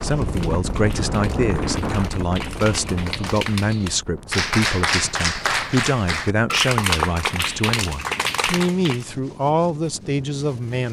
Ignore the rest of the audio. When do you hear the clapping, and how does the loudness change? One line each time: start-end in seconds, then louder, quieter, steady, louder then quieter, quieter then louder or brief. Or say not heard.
0.0-9.1 louder.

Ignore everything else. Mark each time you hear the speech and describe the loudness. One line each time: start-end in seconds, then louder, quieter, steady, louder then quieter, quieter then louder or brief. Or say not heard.
0.0-10.8 steady.